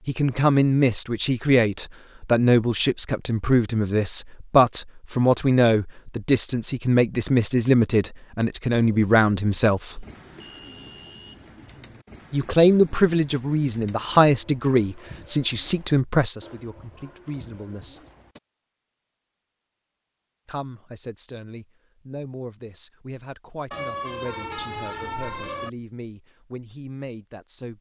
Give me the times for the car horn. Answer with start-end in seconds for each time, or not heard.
9.9-11.8, 23.7-25.7.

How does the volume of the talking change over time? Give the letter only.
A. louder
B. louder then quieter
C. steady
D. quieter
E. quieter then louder
D.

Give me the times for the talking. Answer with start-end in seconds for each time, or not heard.
0.1-10.1, 12.3-18.1, 20.4-27.7.